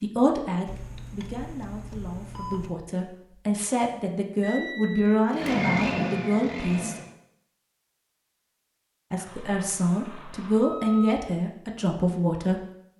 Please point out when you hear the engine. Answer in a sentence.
You can hear the engine from 5.3 to 7.1 s.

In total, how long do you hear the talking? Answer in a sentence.
You can hear the talking for 11 seconds altogether.